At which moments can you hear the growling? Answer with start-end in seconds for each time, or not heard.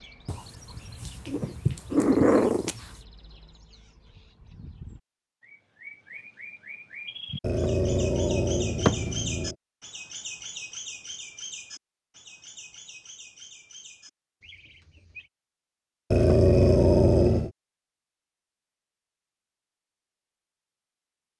0.2-2.9, 7.4-9.6, 16.1-17.5.